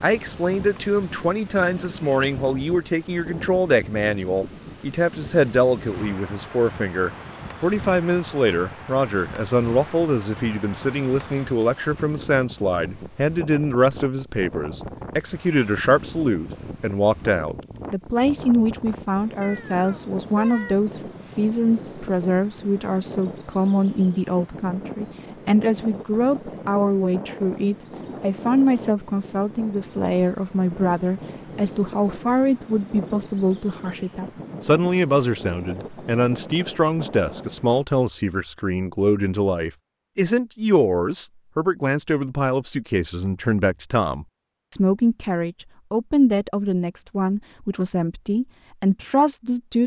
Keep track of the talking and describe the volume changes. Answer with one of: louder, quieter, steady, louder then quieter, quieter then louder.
steady.